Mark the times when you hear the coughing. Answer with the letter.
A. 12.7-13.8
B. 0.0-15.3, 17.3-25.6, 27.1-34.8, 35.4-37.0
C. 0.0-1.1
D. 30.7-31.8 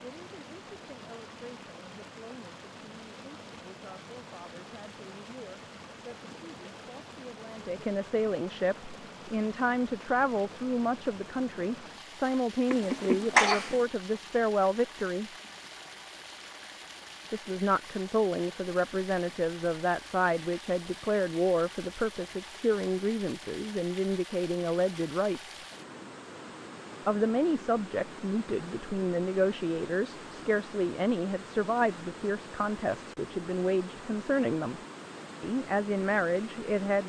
A.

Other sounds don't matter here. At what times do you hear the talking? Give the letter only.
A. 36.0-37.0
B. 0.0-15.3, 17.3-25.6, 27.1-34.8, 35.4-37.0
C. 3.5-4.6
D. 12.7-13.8
B.